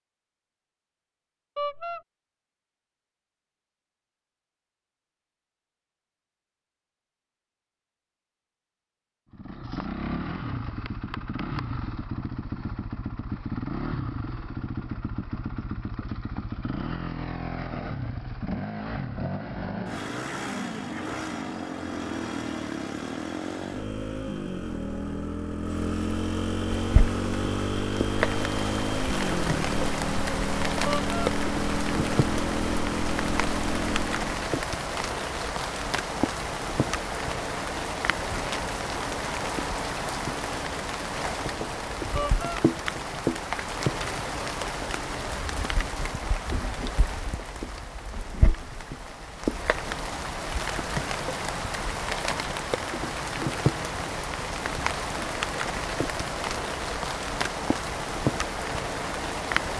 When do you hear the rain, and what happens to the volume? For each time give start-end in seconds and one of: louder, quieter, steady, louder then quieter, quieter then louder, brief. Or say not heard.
26.6-59.7 steady.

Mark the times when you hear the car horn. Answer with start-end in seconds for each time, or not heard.
1.6-2.0, 30.9-31.3, 42.1-42.6.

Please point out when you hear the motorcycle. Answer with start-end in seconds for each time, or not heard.
9.3-34.5.